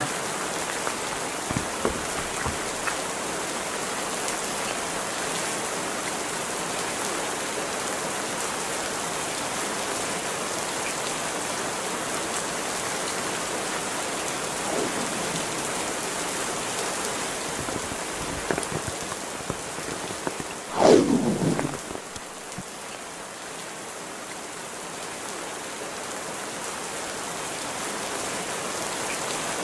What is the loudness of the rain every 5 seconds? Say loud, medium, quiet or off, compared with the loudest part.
loud, loud, loud, loud, medium, loud.